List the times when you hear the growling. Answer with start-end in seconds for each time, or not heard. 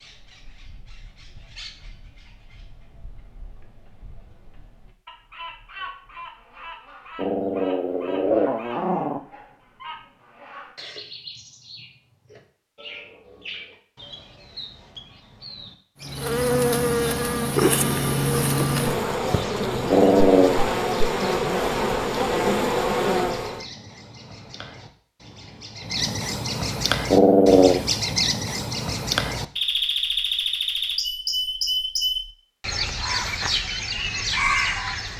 7.2-9.2, 19.9-20.6, 27.1-27.9.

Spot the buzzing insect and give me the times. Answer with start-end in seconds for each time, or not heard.
16.0-23.6.